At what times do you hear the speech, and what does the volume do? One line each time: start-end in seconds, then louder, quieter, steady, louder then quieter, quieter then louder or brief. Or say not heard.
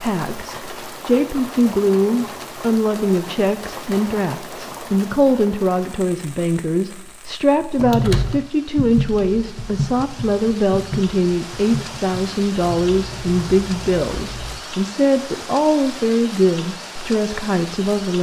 0.0-18.1 steady.